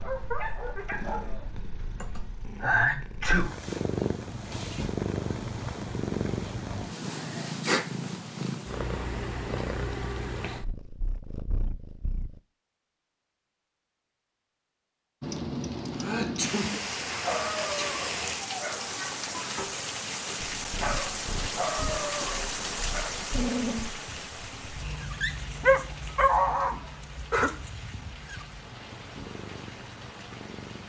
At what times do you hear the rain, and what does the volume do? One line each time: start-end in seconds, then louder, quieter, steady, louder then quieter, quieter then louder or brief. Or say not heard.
15.2-30.8 quieter.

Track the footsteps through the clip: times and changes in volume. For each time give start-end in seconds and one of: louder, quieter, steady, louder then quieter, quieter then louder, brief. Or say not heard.
not heard.